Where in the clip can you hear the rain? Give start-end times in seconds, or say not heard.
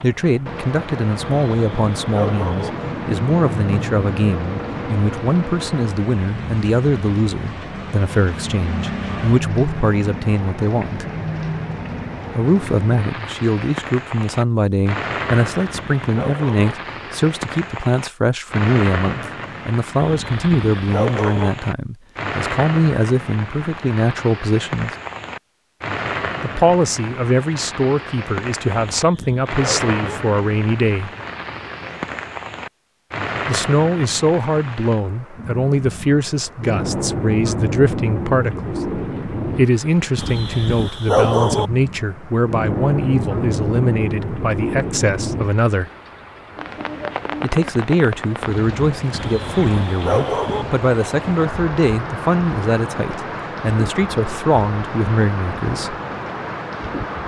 0.0-57.2.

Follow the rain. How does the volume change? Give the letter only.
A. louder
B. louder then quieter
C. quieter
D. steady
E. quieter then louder
D.